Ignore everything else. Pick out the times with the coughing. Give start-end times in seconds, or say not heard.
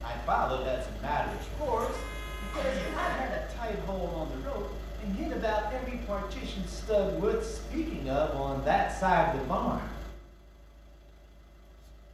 2.5-3.5.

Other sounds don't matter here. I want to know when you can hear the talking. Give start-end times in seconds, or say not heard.
0.0-9.8.